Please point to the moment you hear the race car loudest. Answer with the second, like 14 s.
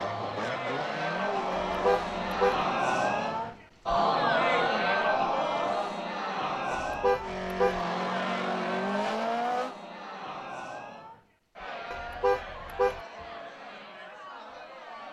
9 s.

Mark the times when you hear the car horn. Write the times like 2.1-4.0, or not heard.
1.6-2.6, 6.8-7.8, 11.9-13.0.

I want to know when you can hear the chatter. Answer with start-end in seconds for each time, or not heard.
0.0-15.0.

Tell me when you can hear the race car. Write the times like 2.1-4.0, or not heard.
0.0-3.6, 7.2-9.8.